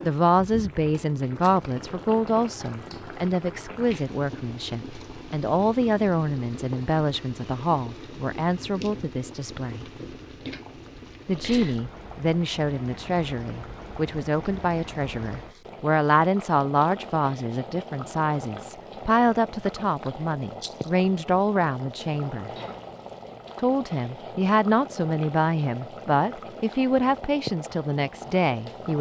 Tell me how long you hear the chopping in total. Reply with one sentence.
You can't hear the chopping here.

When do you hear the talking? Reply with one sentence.
The talking can be heard from 0.0 to 9.8 s, from 11.2 to 22.5 s and from 23.6 to 28.9 s.